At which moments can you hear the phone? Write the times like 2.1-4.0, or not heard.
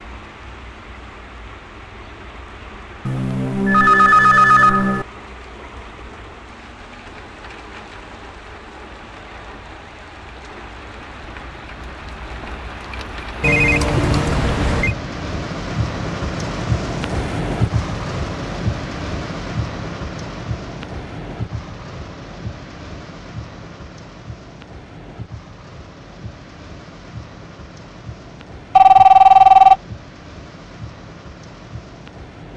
3.0-5.0, 13.4-14.9, 28.8-29.8.